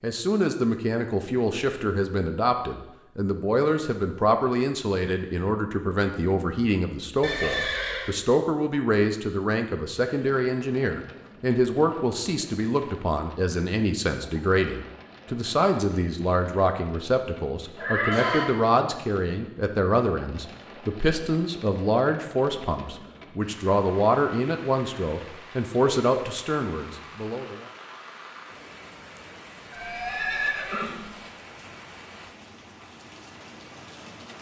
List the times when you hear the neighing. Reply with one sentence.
The neighing can be heard from 7.2 to 8.2 s, from 17.8 to 18.5 s and from 29.7 to 31.1 s.